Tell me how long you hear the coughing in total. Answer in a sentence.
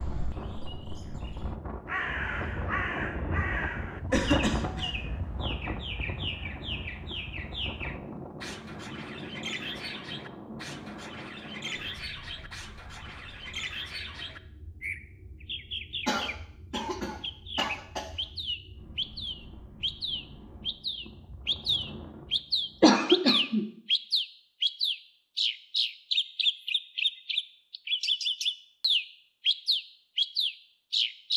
The coughing can be heard for 4 seconds in total.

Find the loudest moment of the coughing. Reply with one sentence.
The volume of the coughing peaks at 23 seconds.